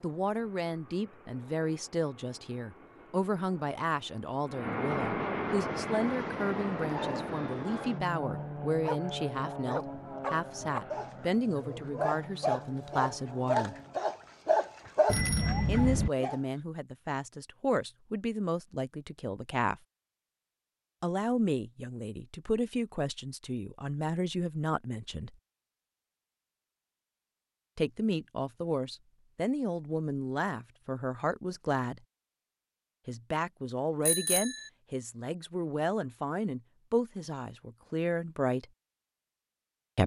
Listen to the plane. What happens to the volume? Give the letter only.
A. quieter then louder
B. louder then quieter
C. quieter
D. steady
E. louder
B.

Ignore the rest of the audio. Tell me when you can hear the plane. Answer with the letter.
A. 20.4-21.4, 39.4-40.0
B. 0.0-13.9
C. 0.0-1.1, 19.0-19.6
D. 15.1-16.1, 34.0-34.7
B.